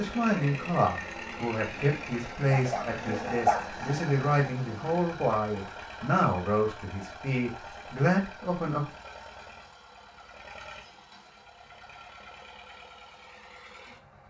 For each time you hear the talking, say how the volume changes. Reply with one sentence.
The talking can be heard from 0.0 to 8.8 s, at a steady volume.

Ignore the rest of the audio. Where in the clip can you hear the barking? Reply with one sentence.
The barking can be heard from 2.5 to 4.0 s.